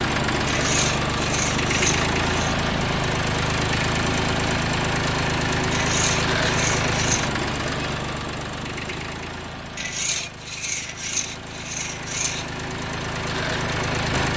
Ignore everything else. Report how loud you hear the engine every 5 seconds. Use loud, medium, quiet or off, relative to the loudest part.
loud, loud, medium.